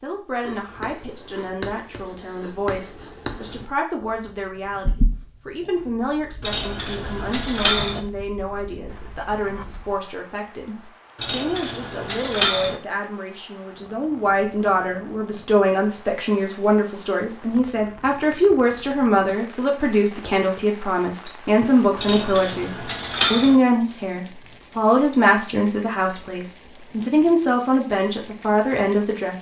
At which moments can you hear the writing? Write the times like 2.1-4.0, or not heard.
0.4-10.0.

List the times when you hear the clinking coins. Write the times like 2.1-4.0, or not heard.
6.4-8.0, 11.2-12.8, 21.9-23.6.